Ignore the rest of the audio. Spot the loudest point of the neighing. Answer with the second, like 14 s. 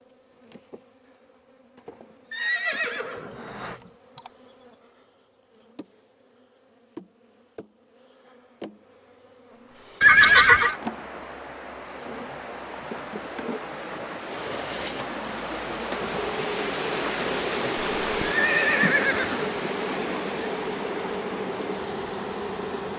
10 s.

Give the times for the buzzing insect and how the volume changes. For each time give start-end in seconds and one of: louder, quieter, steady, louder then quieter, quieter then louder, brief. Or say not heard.
0.0-22.9 louder.